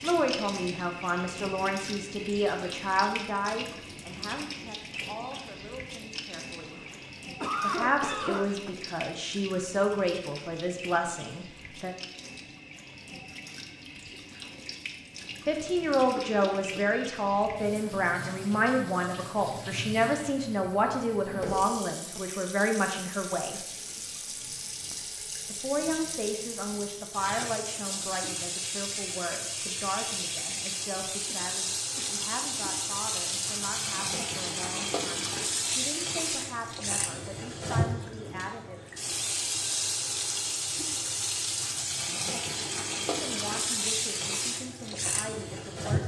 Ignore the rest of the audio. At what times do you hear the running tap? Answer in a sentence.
The running tap can be heard from 0.0 to 46.0 s.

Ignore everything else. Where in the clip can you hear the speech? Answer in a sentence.
The speech can be heard from 0.0 to 6.8 s, from 7.6 to 11.9 s, from 15.4 to 23.6 s, from 25.5 to 38.8 s and from 43.1 to 46.0 s.